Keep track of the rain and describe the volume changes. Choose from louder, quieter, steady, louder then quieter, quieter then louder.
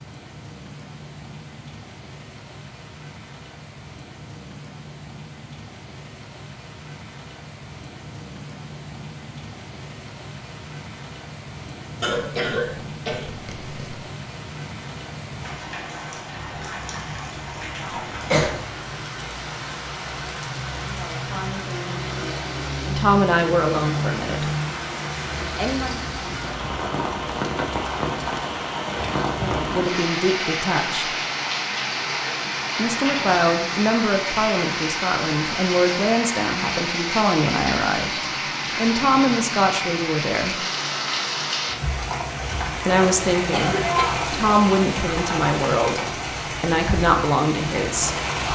louder.